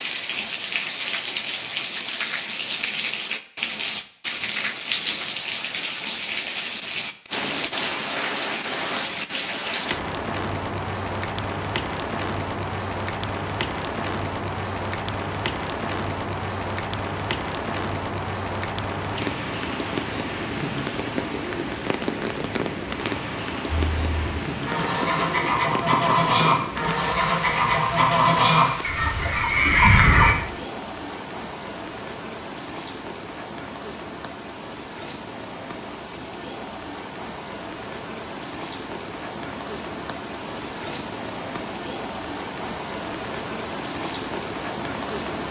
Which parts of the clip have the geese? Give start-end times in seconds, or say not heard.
23.9-30.4.